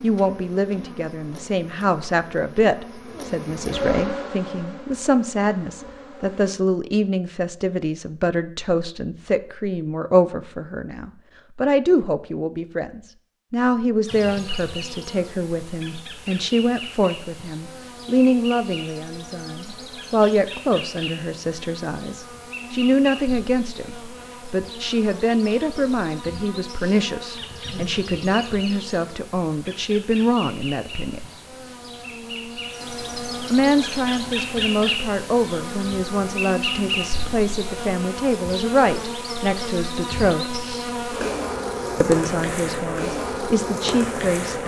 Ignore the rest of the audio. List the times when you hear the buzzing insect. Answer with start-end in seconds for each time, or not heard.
0.0-6.6, 14.1-44.6.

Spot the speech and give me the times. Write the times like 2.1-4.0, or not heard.
0.0-31.2, 33.5-40.6, 42.0-44.6.